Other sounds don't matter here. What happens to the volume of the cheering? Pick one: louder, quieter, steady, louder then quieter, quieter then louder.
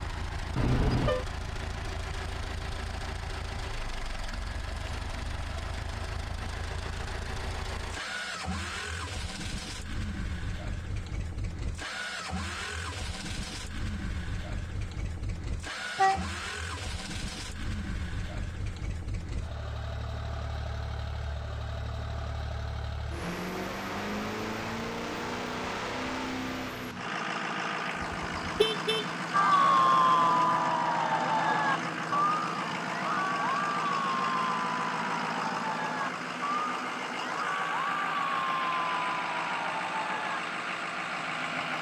quieter.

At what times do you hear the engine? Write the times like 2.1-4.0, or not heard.
0.0-41.7.